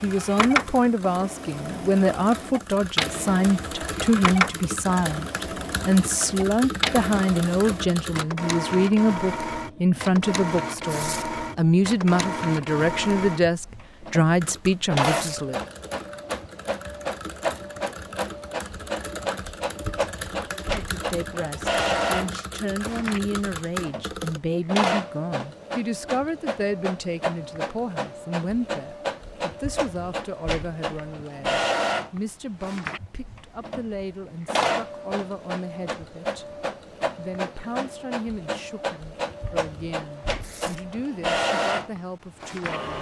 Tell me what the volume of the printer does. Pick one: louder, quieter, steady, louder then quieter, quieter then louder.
steady.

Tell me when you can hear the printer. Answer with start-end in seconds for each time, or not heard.
0.0-42.9.